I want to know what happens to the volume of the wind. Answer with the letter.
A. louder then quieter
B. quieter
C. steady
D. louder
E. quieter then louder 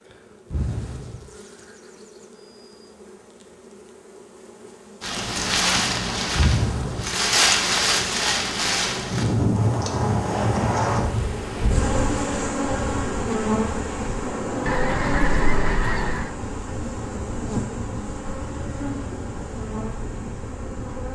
B.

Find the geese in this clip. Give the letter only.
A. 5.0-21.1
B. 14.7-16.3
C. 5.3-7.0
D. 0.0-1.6
B.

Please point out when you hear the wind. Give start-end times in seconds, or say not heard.
5.0-21.1.